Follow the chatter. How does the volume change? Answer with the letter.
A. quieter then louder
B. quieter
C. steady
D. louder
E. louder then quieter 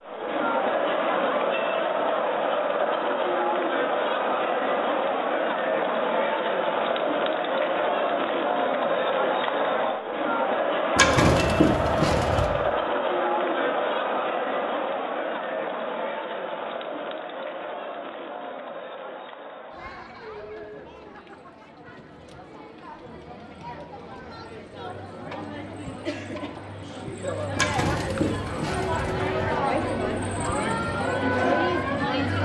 A.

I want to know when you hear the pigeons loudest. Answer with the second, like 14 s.
11 s.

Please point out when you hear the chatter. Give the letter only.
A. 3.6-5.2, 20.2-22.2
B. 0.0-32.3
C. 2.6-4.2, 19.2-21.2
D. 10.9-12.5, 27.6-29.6
B.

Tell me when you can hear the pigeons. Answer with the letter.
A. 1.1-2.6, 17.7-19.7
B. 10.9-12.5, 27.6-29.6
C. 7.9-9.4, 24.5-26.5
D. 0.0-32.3
B.